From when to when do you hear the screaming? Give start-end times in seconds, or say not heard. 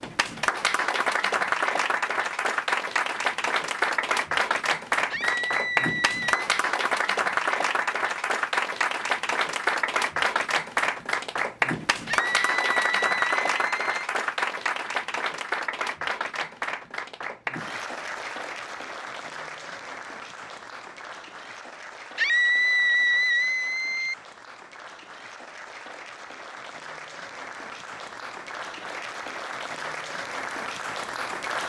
5.1-6.5, 12.1-14.1, 22.1-24.1.